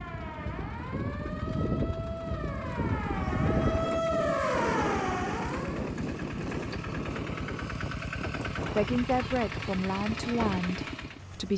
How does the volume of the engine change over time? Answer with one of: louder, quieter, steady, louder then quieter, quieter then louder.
louder.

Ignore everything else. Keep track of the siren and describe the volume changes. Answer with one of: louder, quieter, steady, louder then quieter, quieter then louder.
louder.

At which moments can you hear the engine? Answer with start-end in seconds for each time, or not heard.
0.0-11.5.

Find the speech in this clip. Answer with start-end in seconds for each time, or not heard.
8.8-11.5.